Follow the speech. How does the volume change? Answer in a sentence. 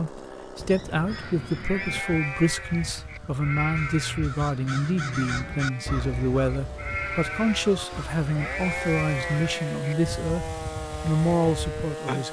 The loudness of the speech stays about the same.